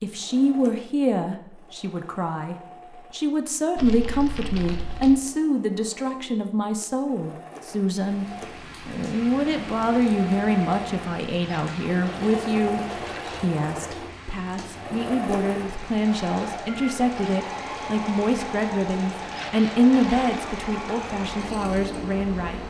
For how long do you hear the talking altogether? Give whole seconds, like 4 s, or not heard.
22 s.